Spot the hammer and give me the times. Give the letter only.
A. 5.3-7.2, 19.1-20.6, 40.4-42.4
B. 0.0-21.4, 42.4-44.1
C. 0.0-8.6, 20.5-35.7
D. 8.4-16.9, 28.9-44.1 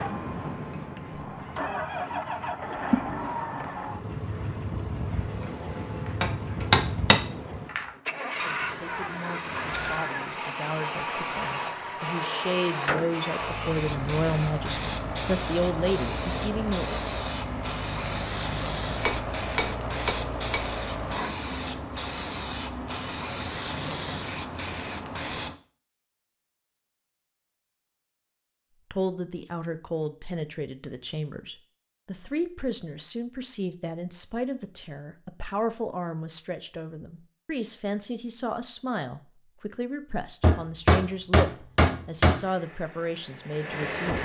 A.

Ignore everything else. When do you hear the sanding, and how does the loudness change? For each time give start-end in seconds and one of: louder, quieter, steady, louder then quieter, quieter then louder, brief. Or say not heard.
not heard.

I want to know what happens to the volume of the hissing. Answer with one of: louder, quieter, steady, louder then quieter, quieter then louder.
louder.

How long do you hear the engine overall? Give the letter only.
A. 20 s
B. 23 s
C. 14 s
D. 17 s
B.